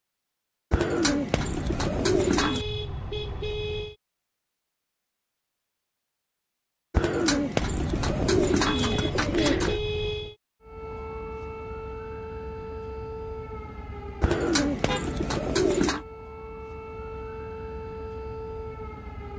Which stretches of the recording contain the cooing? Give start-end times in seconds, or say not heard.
0.7-2.6, 6.9-9.8, 14.2-16.1.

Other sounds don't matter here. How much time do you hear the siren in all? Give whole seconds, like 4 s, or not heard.
9 s.